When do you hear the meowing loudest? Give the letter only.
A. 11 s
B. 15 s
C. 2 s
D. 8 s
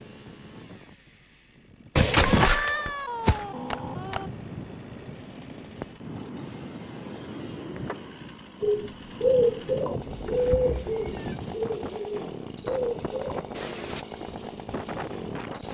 C.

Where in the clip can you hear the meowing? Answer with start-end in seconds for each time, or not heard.
1.9-4.3, 10.2-11.3.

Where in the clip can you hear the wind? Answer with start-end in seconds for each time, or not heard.
0.0-15.7.